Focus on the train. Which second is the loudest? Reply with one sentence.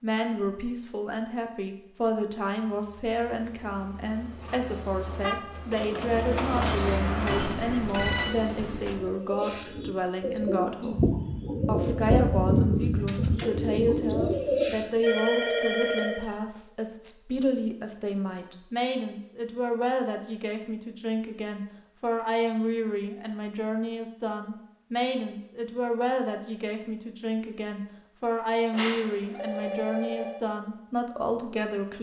The volume of the train peaks at 7 seconds.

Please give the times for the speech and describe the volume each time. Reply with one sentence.
The speech can be heard from 0.0 to 31.9 s, at a steady volume.